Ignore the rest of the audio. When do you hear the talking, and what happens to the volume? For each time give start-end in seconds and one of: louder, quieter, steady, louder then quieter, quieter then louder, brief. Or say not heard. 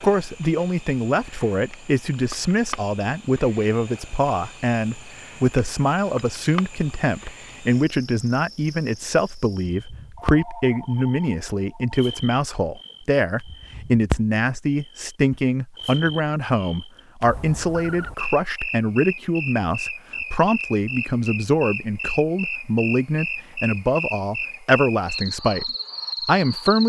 0.0-26.8 steady.